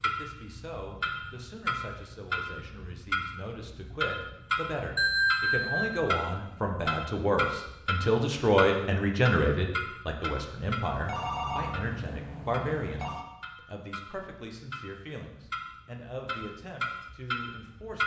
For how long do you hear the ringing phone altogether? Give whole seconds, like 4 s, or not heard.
3 s.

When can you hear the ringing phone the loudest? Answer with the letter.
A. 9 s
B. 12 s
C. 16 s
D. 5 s
D.